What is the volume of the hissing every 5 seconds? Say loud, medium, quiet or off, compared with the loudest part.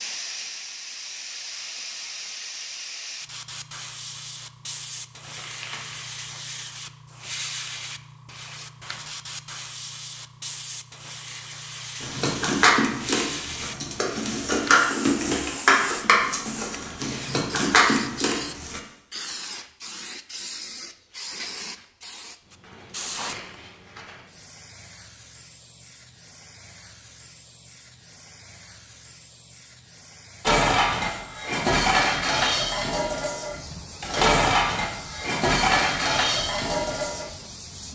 loud, loud, loud, loud, loud, quiet, medium, medium.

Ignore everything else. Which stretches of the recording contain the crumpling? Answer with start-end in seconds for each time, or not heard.
5.2-6.0, 22.6-24.2.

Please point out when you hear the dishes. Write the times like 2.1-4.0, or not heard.
12.0-18.8, 30.4-37.2.